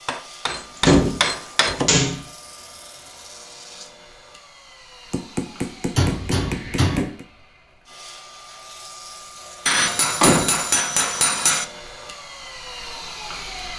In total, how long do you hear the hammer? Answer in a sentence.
You can hear the hammer for 6 seconds altogether.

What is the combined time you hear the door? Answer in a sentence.
The door can be heard for 5 seconds in total.